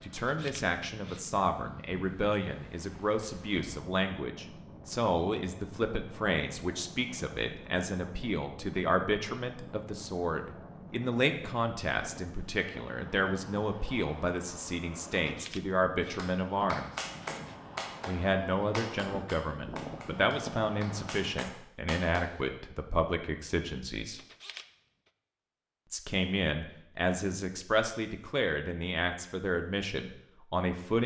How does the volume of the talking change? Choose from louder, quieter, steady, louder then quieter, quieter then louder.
steady.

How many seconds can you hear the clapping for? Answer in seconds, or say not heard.
6 s.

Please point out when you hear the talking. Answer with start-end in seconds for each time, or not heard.
0.0-16.9, 18.1-24.2, 25.9-31.0.